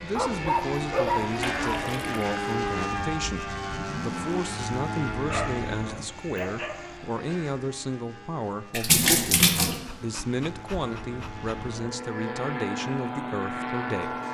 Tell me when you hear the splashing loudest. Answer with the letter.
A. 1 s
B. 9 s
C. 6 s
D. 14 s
B.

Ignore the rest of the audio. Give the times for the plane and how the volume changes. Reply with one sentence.
You can hear the plane from 0.0 to 14.2 s, getting quieter then louder.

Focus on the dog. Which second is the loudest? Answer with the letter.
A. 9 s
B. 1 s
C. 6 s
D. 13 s
B.